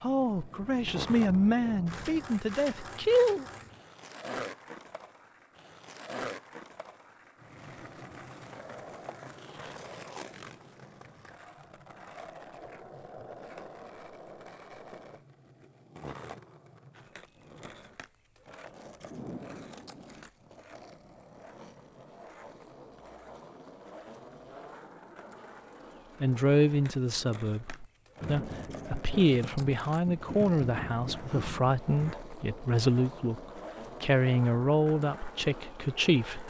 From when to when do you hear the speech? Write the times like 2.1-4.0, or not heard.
0.0-3.5, 26.2-33.4, 34.0-36.4.